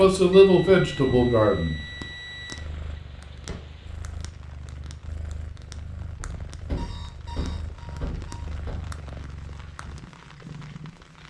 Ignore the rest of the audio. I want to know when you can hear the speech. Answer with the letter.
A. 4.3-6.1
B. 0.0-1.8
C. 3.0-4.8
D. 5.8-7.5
B.